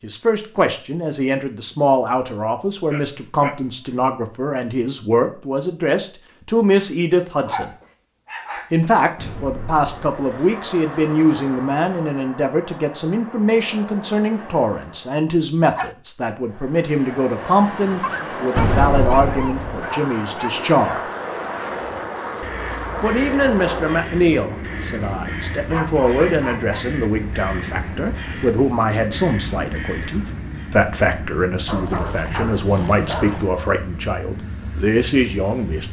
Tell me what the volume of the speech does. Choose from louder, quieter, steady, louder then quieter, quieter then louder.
steady.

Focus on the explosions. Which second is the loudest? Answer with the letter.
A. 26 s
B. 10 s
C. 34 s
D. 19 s
D.